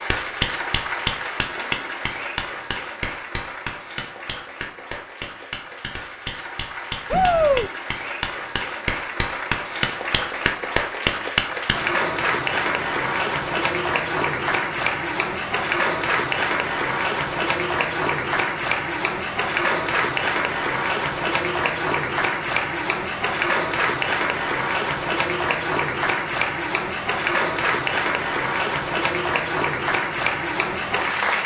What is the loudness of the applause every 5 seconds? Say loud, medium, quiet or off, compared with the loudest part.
medium, medium, loud, loud, loud, loud, loud.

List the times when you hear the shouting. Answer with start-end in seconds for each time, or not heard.
7.1-7.7.